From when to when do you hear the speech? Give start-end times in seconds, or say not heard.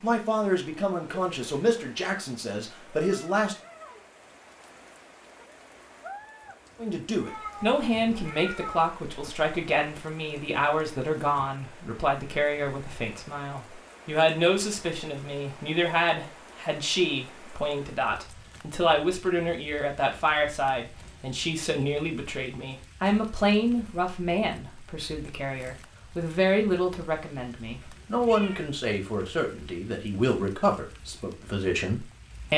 0.0-3.5, 6.8-32.5.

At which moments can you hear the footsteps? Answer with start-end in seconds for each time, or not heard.
not heard.